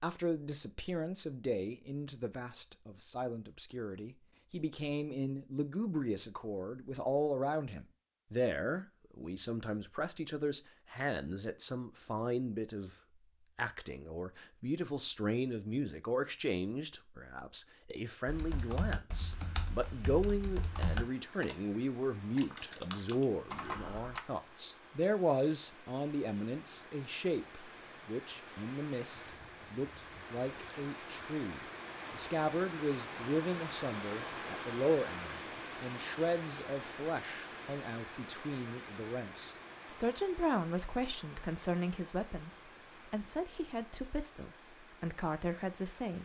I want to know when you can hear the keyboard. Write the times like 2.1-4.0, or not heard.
18.2-24.2.